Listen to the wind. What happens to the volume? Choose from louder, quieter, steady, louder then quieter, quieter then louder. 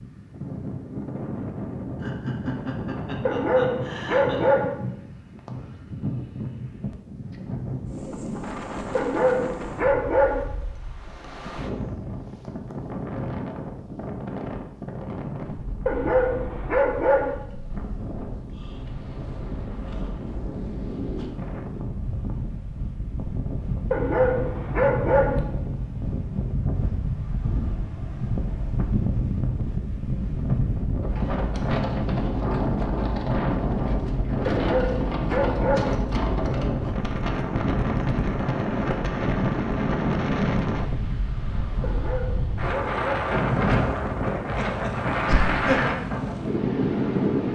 louder.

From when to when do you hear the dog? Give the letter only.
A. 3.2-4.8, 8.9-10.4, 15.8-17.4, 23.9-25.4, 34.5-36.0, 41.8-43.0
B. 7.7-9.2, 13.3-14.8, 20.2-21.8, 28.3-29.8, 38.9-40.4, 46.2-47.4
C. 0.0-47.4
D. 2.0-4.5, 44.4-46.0
A.